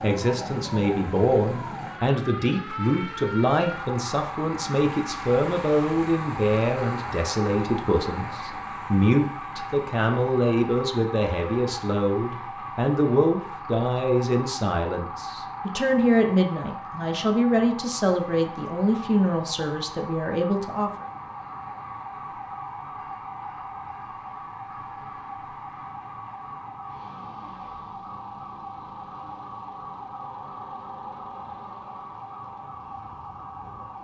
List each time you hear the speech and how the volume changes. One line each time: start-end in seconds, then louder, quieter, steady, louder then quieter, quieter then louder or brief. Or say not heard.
0.0-21.1 steady.